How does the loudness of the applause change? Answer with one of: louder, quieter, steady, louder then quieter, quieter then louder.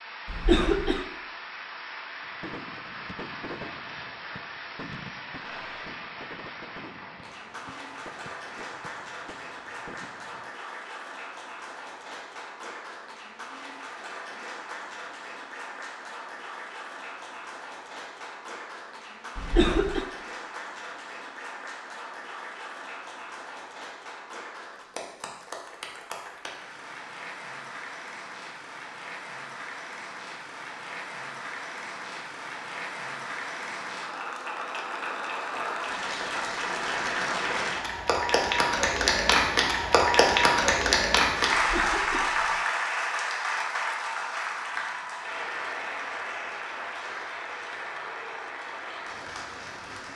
louder.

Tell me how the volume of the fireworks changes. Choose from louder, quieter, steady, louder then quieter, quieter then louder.
quieter.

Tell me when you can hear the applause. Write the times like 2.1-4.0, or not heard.
0.0-50.1.